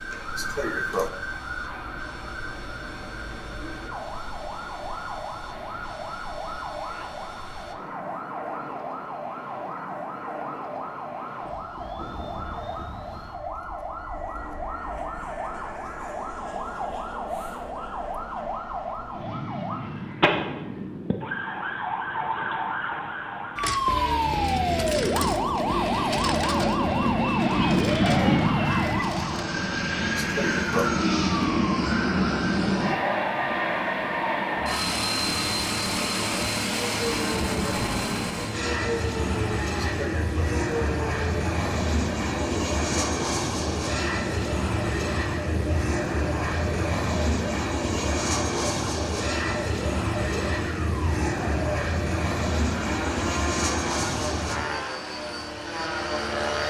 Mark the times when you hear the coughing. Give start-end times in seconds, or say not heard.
0.3-1.1, 30.1-30.9, 39.8-40.5.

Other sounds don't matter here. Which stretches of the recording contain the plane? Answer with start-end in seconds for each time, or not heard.
0.0-56.6.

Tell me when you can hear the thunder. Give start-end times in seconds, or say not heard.
not heard.